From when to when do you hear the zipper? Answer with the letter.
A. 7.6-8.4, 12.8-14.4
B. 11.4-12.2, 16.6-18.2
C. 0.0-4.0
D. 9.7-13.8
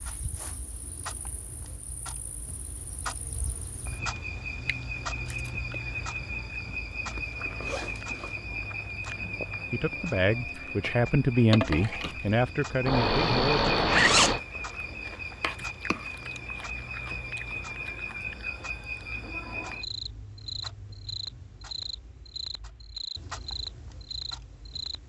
A.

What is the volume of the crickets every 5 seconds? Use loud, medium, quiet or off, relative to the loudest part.
medium, loud, loud, loud, loud.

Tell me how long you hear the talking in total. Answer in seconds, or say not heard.
4 s.